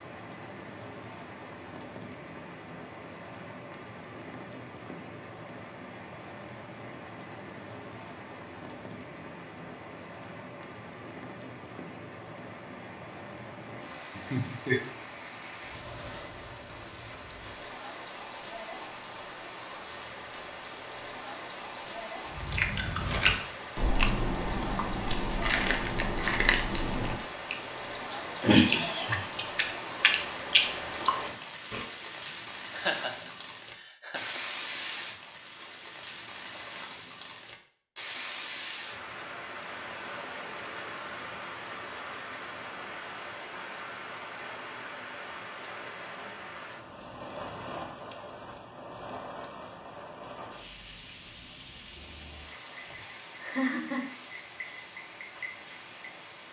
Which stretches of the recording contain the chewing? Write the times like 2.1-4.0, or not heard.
22.4-31.9.